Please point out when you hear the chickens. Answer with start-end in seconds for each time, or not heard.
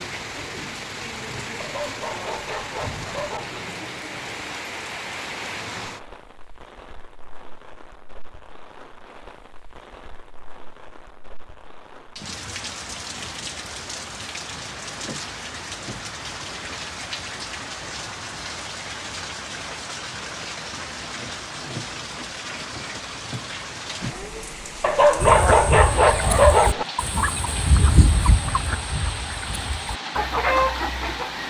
25.2-31.4.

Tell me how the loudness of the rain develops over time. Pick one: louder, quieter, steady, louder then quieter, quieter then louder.
quieter then louder.